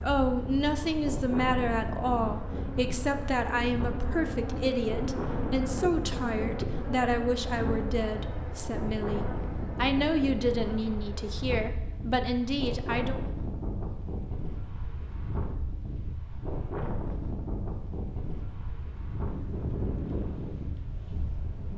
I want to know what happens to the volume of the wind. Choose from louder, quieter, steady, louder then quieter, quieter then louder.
steady.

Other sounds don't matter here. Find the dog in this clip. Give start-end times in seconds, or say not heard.
not heard.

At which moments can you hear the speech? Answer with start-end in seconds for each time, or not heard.
0.0-13.2.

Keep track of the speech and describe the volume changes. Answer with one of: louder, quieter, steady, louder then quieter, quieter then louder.
steady.